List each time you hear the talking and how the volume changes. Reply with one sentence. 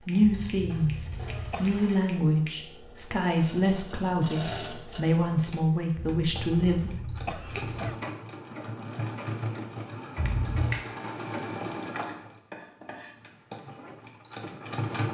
The talking can be heard from 0.0 to 7.7 s, at a steady volume.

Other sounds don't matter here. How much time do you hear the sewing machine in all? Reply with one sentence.
The sewing machine can be heard for 15 seconds in total.